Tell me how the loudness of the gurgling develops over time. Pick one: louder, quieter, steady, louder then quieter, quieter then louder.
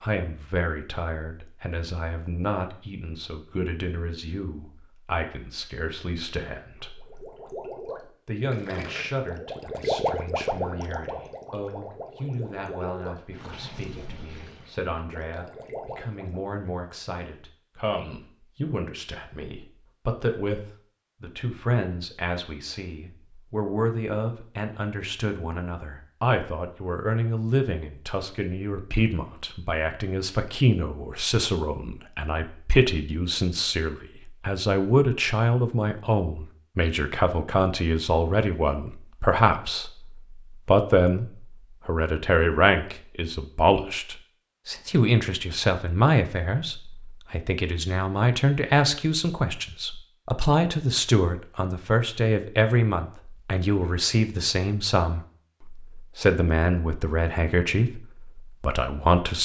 louder then quieter.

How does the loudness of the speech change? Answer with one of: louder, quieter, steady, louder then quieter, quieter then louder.
louder.